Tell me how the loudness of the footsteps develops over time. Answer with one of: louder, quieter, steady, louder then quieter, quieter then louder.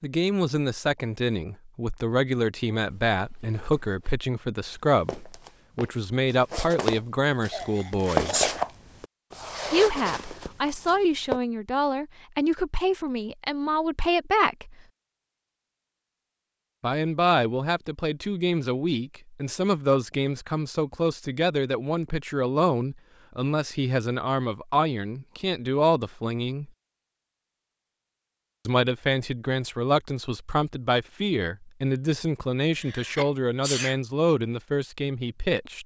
louder then quieter.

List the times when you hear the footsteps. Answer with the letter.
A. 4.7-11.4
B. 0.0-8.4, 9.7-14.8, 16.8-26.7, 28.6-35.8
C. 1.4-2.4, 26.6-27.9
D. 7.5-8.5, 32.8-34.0
A.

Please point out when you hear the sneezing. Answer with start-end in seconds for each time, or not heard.
7.5-8.5, 32.8-34.0.